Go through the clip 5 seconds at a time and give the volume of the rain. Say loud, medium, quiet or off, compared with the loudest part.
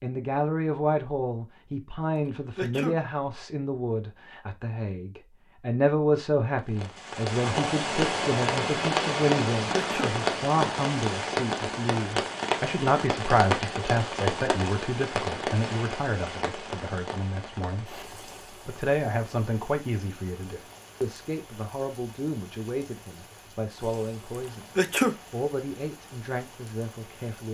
off, loud, loud, medium, quiet, quiet.